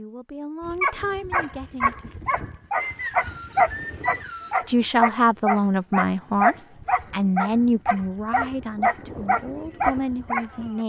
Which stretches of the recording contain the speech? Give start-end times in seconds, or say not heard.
0.0-2.1, 4.7-10.8.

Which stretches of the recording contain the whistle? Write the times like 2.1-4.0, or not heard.
2.8-4.6.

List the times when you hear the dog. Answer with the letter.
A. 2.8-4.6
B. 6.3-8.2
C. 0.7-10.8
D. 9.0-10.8
C.